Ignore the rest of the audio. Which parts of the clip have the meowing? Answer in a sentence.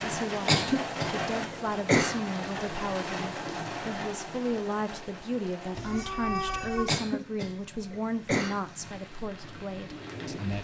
The meowing can be heard from 5.8 to 6.9 s.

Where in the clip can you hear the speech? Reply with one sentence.
The speech can be heard from 0.0 to 10.5 s.